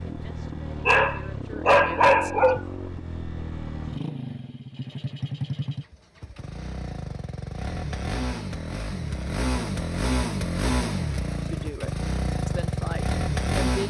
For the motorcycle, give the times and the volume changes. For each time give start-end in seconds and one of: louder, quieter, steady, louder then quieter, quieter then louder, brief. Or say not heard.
0.0-13.8 louder.